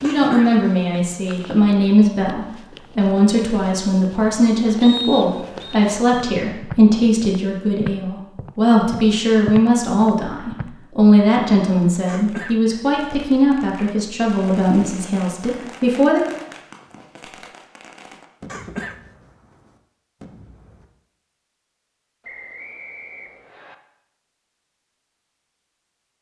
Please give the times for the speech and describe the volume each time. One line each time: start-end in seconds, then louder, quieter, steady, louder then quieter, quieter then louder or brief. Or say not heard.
0.0-16.2 steady.